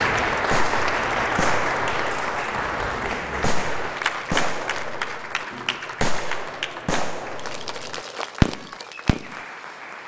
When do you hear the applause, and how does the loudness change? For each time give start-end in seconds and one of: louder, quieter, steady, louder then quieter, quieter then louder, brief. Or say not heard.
0.0-10.0 quieter.